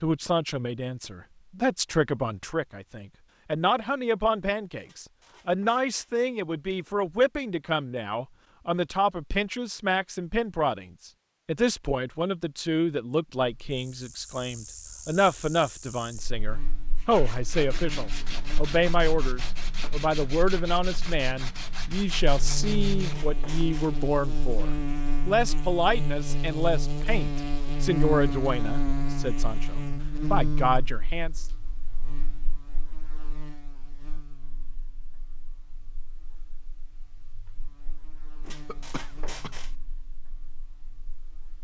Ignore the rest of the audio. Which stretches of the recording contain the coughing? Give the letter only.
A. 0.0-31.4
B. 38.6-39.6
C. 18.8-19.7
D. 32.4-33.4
B.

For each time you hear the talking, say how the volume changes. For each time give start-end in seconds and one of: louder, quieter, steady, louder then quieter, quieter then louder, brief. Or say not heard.
0.0-31.4 steady.